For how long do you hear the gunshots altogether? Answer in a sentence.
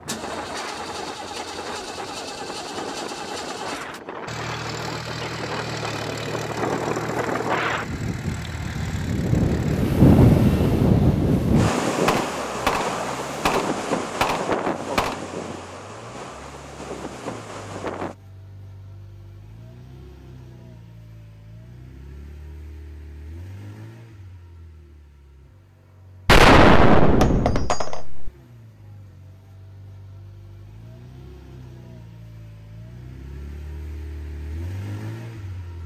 You can hear the gunshots for 5 seconds altogether.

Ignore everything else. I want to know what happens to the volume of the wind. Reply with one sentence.
The loudness of the wind goes up, then down.